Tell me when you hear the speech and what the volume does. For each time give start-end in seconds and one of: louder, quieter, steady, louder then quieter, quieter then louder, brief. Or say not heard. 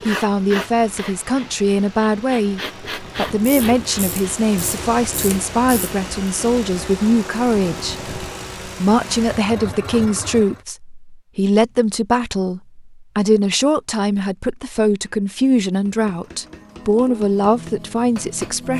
0.1-18.7 steady.